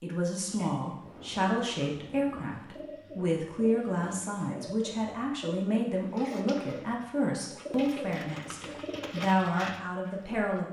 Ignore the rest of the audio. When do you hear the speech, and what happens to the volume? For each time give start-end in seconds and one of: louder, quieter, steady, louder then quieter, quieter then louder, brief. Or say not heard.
0.0-10.6 steady.